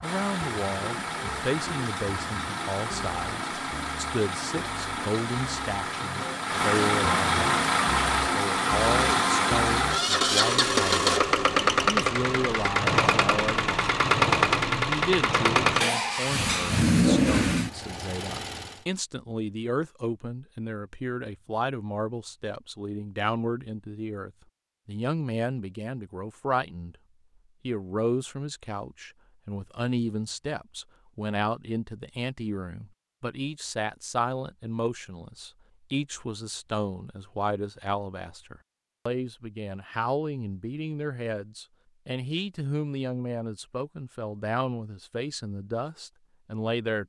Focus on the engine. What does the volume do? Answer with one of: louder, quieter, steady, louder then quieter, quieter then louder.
louder.